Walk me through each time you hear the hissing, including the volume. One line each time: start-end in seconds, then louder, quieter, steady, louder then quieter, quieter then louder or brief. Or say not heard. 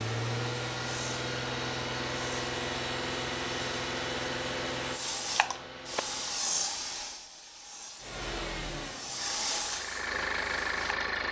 0.0-11.0 louder.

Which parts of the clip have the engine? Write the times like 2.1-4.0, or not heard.
0.0-6.5, 8.0-11.2.